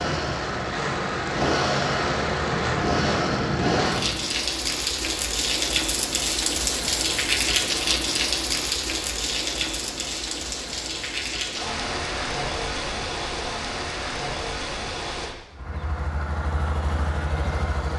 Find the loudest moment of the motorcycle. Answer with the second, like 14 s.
3 s.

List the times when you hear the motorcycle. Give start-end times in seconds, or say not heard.
0.0-4.2, 15.5-17.9.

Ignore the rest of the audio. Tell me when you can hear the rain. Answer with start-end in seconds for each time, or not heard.
0.0-15.3.